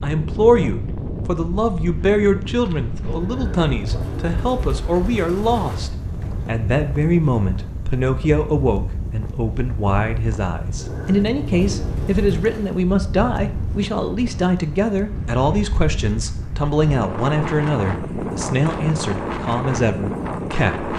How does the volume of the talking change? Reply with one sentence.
The loudness of the talking stays about the same.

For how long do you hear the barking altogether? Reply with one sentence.
The barking can't be heard in this clip.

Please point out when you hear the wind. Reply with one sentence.
The wind can be heard from 0.0 to 20.9 s.